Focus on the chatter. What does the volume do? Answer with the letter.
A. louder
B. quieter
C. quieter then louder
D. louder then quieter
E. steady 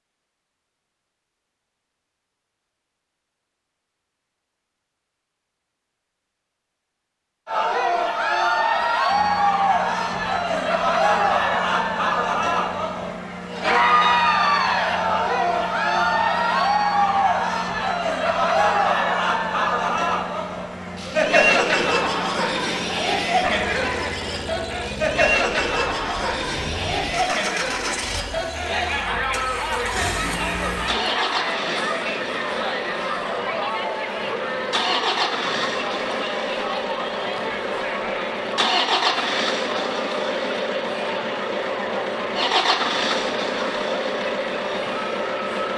B.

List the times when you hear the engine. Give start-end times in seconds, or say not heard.
9.1-45.7.